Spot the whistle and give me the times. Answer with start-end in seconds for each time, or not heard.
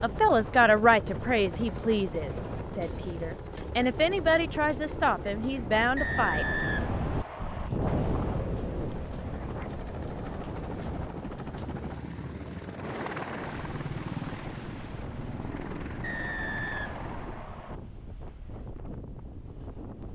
6.0-7.7, 16.0-17.8.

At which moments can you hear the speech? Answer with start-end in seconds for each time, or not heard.
0.0-6.5.